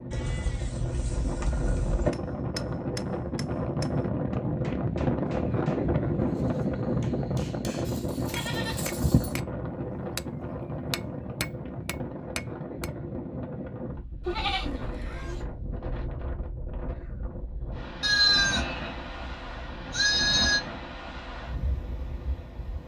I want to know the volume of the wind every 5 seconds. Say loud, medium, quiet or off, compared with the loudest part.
loud, loud, medium, medium, medium.